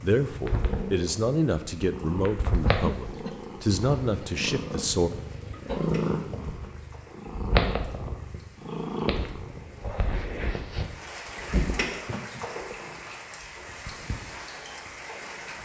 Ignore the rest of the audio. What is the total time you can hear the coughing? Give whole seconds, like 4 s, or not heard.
2 s.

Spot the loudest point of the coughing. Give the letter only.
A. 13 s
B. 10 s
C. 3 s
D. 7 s
C.